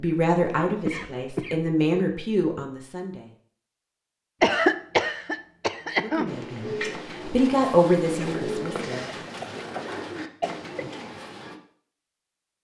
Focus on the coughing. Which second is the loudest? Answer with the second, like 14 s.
5 s.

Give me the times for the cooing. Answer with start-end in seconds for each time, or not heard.
6.2-11.6.